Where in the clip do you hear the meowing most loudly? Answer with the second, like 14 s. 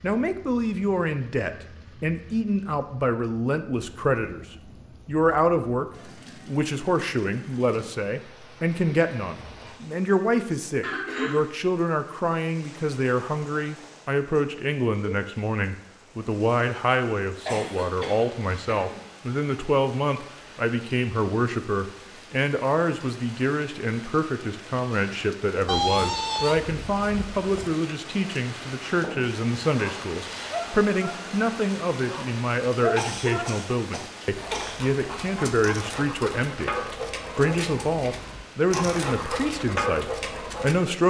26 s.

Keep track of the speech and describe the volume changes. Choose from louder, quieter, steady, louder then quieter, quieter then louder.
steady.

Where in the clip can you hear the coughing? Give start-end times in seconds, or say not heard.
10.8-11.4, 17.4-19.1, 33.0-34.8.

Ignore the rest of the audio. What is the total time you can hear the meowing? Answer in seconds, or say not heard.
2 s.